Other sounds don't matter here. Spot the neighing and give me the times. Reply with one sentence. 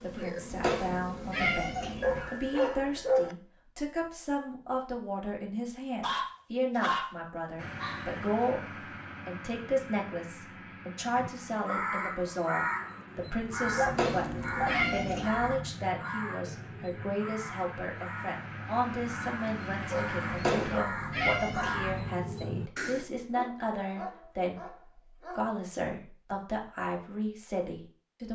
You can't hear the neighing here.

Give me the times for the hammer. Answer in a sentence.
The hammer can't be heard in this clip.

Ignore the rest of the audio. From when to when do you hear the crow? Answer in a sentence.
The crow can be heard from 11.2 to 23.1 s.